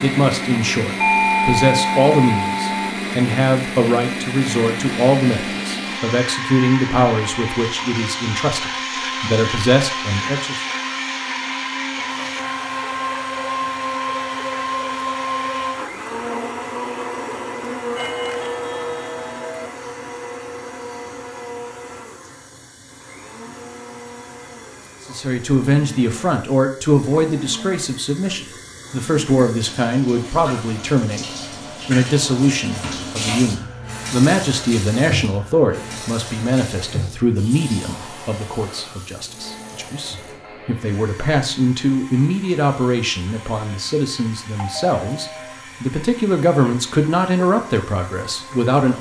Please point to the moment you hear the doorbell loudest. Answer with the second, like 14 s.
1 s.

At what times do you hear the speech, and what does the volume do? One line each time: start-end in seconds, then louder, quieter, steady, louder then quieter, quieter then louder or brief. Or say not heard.
0.0-10.6 steady
25.1-48.9 steady.